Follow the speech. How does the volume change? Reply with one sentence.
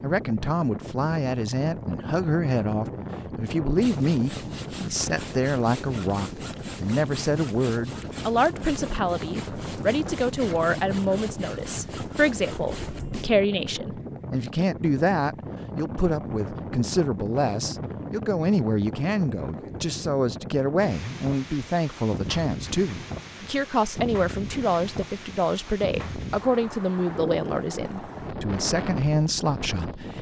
The loudness of the speech stays about the same.